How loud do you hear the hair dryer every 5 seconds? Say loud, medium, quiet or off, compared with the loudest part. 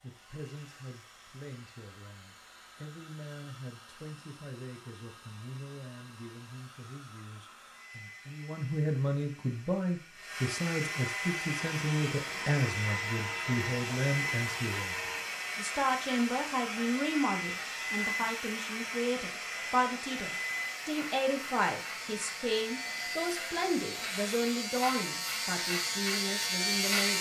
quiet, quiet, loud, loud, loud, off.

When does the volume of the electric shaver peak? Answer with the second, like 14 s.
27 s.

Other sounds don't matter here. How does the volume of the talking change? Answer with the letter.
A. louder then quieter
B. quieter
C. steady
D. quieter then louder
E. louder
E.